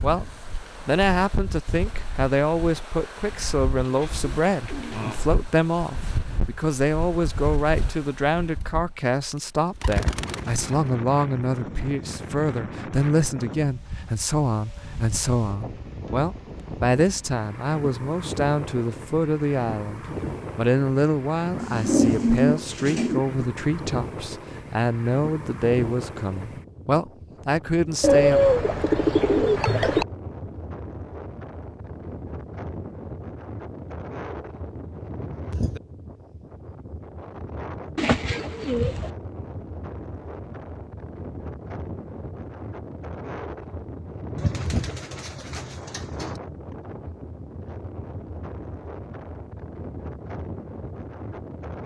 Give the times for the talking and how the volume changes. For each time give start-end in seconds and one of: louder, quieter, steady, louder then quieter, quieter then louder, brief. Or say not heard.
0.0-28.4 steady.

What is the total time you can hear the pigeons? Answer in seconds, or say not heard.
10 s.